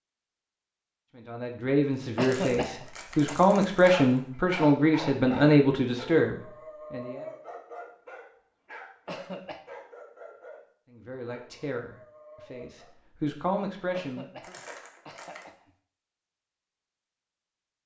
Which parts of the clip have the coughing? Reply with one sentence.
The coughing can be heard from 2.1 to 3.4 s, from 9.1 to 9.7 s and from 13.9 to 15.7 s.